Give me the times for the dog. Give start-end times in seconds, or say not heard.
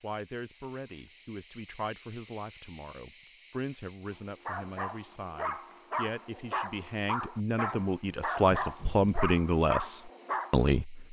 4.0-10.7.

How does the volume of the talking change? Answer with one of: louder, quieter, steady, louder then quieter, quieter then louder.
louder.